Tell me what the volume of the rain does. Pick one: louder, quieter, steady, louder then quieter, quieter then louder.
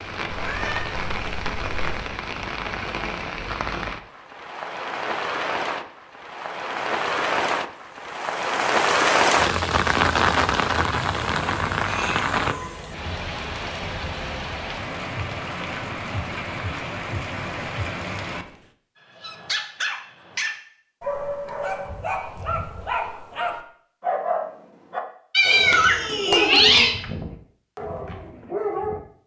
louder then quieter.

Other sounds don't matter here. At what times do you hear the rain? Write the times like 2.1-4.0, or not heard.
0.0-18.7.